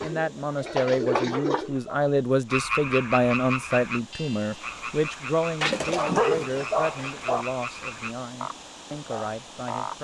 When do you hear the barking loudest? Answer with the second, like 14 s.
6 s.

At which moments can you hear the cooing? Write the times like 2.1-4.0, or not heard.
0.0-1.8.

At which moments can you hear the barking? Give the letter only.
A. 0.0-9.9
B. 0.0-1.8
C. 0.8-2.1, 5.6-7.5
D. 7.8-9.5
C.